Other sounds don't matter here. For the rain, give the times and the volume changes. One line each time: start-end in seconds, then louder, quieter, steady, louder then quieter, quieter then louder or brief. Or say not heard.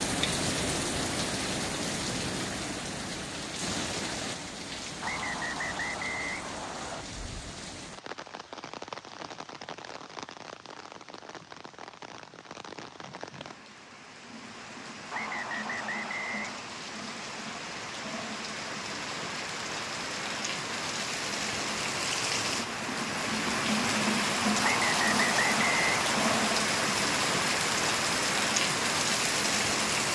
0.0-30.0 quieter then louder.